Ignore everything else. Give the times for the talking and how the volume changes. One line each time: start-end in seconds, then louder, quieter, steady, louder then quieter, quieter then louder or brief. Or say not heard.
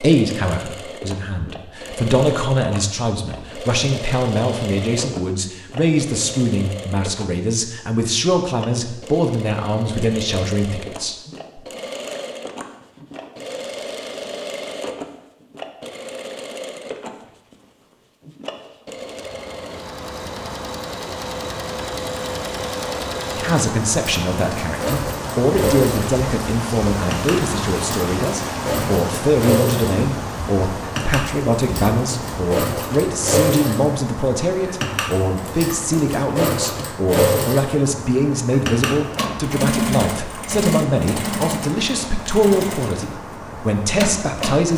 0.0-11.6 steady
23.4-44.7 steady.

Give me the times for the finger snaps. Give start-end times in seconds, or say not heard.
not heard.